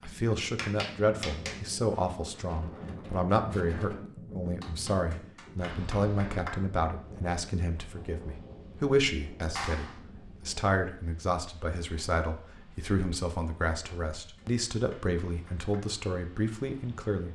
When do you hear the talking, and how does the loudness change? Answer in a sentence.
You can hear the talking from 0.0 to 17.3 s, at a steady volume.